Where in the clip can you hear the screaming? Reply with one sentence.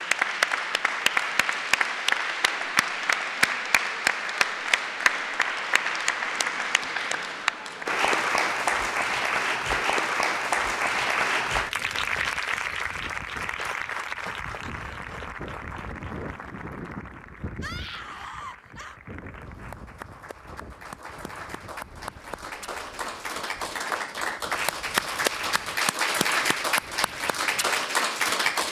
You can hear the screaming from 17.6 to 19.0 s.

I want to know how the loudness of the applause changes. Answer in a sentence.
The loudness of the applause goes down, then up.